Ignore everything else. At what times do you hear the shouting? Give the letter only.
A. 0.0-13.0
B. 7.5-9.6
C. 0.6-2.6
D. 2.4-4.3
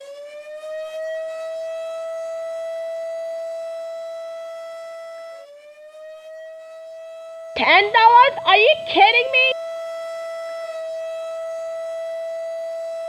B.